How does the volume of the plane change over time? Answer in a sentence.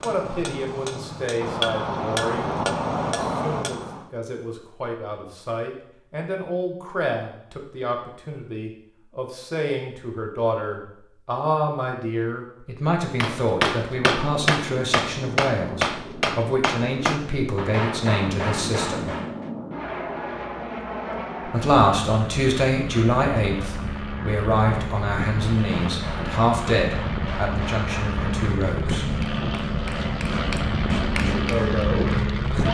The volume of the plane goes up.